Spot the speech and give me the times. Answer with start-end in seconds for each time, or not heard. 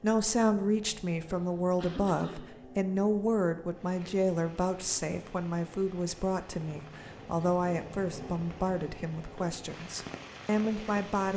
0.0-11.3.